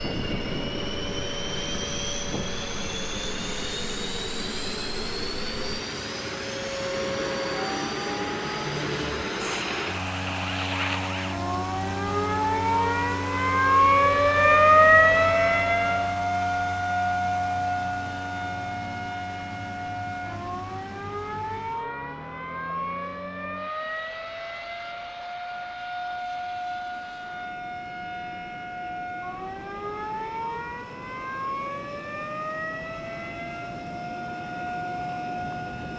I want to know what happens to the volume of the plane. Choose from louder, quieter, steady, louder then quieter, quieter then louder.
quieter.